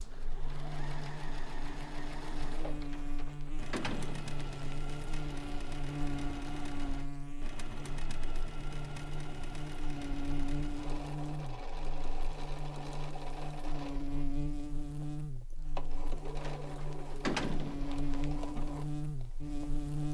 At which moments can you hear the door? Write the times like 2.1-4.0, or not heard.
2.9-4.8, 16.5-18.2.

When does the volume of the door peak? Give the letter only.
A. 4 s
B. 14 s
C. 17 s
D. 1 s
C.